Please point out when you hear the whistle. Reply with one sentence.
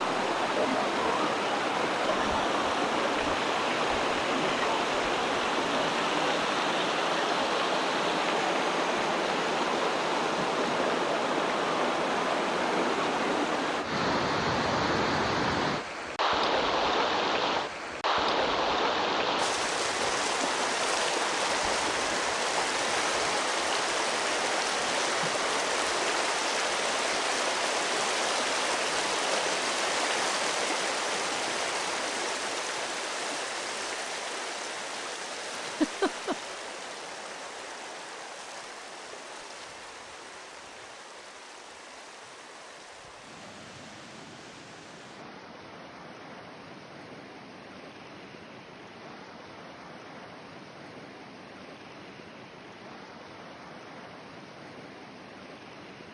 The whistle can't be heard in this clip.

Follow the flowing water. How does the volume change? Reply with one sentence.
The loudness of the flowing water goes down.